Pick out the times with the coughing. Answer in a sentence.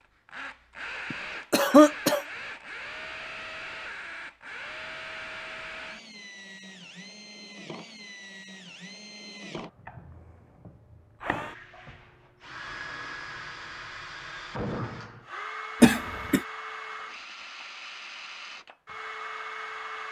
The coughing can be heard from 1.1 to 2.2 s and from 15.8 to 16.4 s.